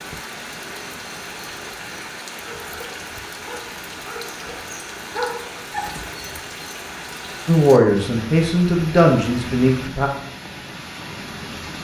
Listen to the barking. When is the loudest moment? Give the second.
5 s.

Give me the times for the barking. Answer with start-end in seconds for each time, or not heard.
2.5-6.4.